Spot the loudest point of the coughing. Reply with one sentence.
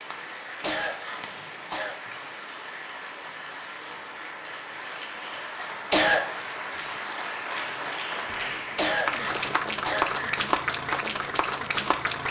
The loudest moment of the coughing is at 6 seconds.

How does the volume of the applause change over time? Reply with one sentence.
The volume of the applause goes up.